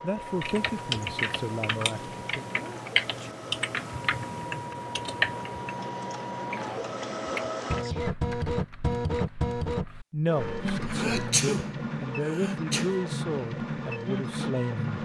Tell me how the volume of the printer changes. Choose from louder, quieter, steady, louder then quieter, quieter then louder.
louder.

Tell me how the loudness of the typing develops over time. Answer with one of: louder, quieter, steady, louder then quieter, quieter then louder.
quieter.